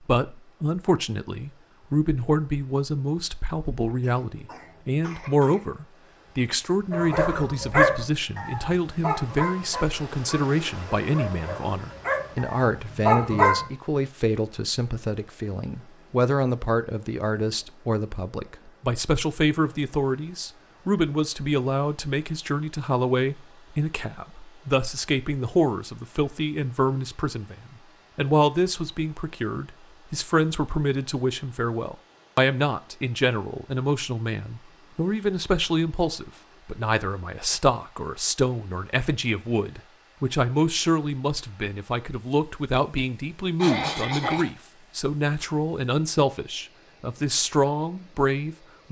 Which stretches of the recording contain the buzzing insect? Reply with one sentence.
You can't hear the buzzing insect here.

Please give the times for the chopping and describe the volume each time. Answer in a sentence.
You can't hear the chopping here.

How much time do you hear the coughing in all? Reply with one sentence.
The coughing can be heard for 3 seconds in total.